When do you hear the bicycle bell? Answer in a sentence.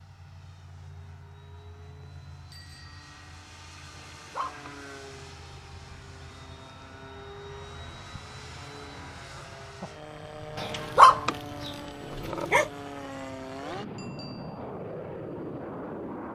You can hear the bicycle bell from 2.5 to 3.1 s and from 13.9 to 14.6 s.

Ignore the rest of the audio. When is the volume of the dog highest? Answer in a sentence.
The loudest moment of the dog is at 11 seconds.